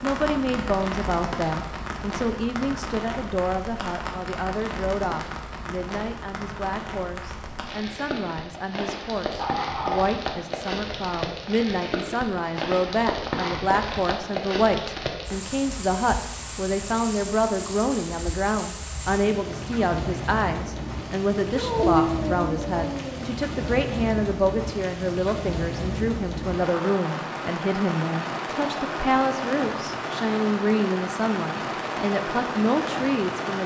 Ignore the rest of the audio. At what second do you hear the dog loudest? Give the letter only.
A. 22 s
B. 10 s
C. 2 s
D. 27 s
A.